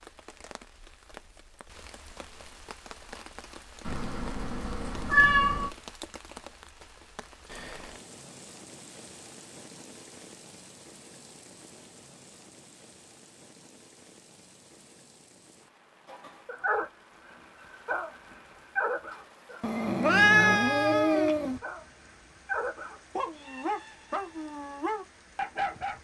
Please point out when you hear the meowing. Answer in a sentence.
The meowing can be heard from 3.9 to 5.7 s and from 19.6 to 21.6 s.